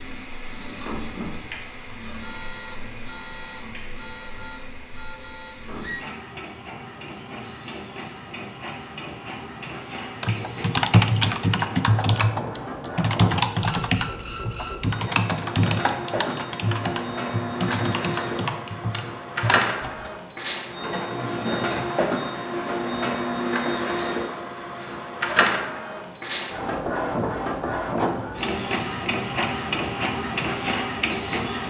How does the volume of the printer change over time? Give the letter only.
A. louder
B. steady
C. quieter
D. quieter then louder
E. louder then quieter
A.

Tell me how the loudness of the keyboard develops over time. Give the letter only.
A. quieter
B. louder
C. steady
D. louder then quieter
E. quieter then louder
A.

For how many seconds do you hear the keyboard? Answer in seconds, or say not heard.
10 s.